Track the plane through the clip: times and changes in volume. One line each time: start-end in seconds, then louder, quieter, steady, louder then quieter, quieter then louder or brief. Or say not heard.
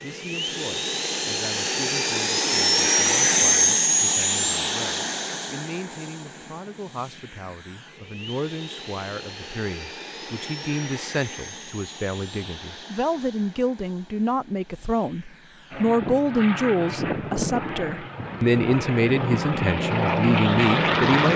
0.0-21.3 quieter then louder.